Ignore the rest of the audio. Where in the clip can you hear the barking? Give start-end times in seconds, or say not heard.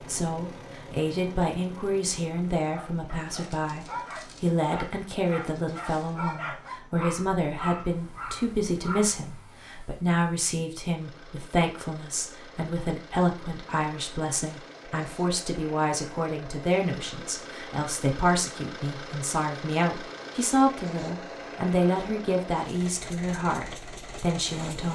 2.7-9.2.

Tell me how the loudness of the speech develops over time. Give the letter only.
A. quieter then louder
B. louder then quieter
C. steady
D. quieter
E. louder
C.